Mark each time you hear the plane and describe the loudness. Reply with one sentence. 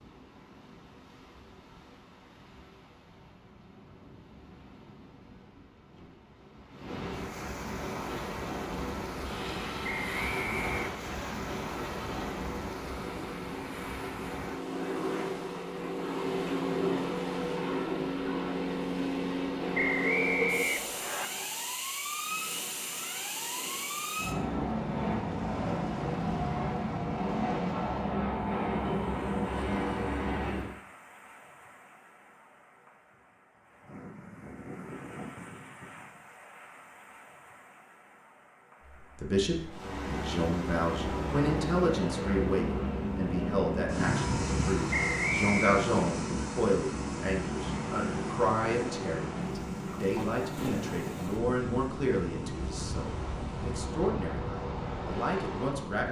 You can hear the plane from 7.9 to 30.8 s, getting louder; and from 39.6 to 55.8 s, getting quieter.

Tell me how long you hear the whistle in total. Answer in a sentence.
The whistle can be heard for 4 seconds in total.